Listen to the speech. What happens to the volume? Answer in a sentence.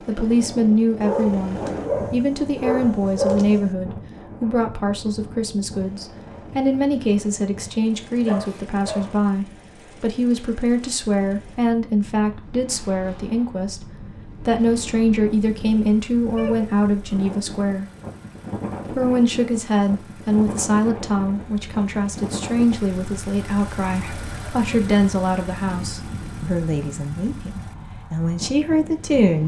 The volume of the speech stays about the same.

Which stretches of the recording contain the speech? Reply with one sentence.
The speech can be heard from 0.0 to 17.9 s and from 18.9 to 29.4 s.